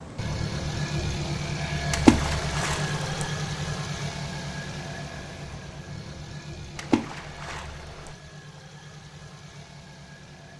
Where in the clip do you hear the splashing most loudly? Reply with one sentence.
The volume of the splashing peaks at 2 seconds.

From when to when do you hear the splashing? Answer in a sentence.
The splashing can be heard from 1.9 to 3.2 s and from 6.8 to 8.2 s.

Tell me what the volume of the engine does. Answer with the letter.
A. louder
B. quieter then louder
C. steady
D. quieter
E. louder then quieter
D.